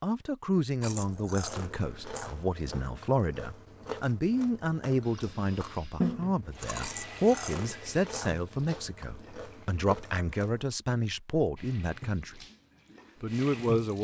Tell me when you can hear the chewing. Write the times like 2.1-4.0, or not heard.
0.8-10.7.